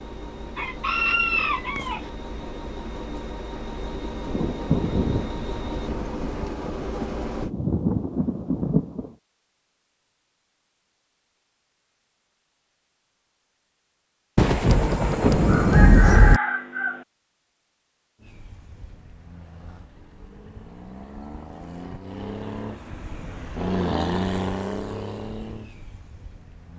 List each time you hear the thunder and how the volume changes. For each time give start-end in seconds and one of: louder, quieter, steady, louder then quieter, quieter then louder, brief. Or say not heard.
4.2-9.1 quieter then louder
14.3-16.4 brief.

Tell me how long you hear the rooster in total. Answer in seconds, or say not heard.
3 s.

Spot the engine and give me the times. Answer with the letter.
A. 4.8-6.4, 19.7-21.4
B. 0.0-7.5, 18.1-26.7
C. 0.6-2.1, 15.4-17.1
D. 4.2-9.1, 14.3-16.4
B.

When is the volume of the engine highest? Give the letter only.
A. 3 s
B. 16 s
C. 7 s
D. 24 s
D.